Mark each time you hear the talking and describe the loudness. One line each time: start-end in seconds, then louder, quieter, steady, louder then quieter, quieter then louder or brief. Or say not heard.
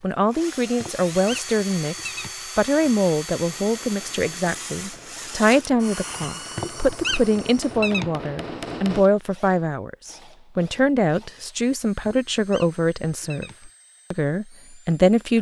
0.0-15.3 steady.